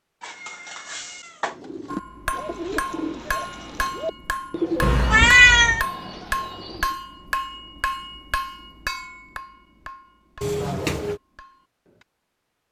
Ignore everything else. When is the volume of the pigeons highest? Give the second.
5 s.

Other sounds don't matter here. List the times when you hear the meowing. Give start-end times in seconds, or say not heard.
0.2-1.6, 4.8-5.8, 10.4-11.2.